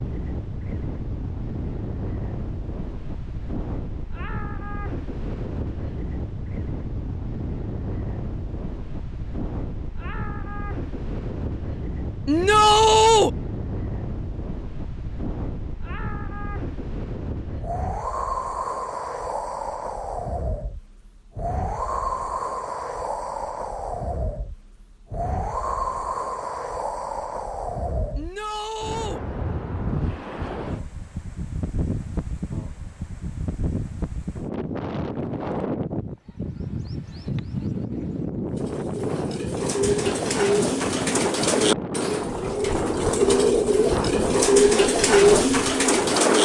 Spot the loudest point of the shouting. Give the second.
13 s.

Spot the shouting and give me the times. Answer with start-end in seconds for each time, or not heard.
12.2-13.3, 28.1-29.2.